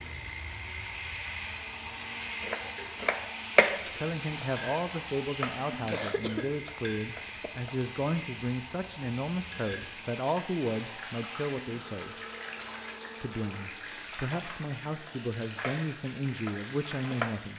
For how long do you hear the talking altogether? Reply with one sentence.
The talking can be heard for 13 seconds in total.